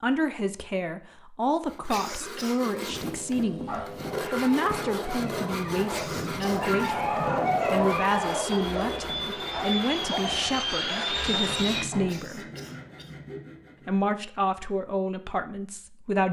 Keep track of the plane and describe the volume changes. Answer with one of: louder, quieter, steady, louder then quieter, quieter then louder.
louder.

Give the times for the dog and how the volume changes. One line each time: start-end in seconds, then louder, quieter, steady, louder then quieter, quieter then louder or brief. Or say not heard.
3.6-12.1 louder then quieter.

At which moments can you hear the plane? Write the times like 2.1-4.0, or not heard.
2.9-11.9.